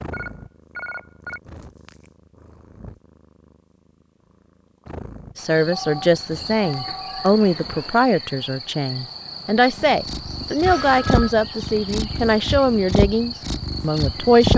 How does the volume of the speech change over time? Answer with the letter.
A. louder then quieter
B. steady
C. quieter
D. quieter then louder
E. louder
B.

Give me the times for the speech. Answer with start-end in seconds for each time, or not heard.
5.3-14.5.